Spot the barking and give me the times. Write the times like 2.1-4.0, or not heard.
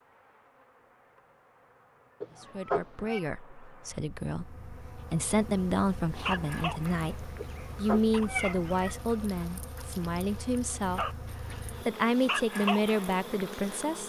6.2-13.8.